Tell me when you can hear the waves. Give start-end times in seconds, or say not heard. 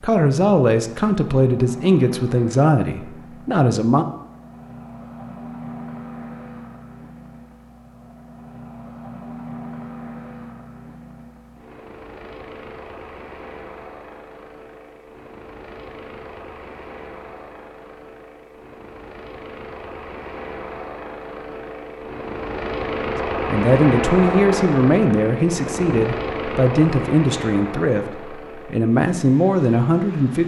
not heard.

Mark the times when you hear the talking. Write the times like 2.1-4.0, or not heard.
0.0-4.0, 23.4-30.4.